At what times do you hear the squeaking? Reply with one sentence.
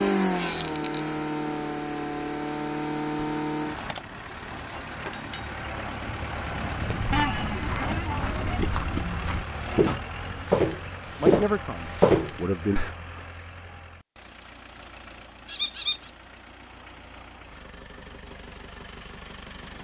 The squeaking can be heard from 0.3 to 1.0 s, from 7.1 to 8.4 s and from 15.4 to 16.1 s.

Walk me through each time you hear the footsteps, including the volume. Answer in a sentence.
You can hear the footsteps from 6.8 to 12.9 s, getting louder.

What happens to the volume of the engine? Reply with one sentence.
The loudness of the engine goes down.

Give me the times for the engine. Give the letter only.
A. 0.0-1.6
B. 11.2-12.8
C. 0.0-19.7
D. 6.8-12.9
C.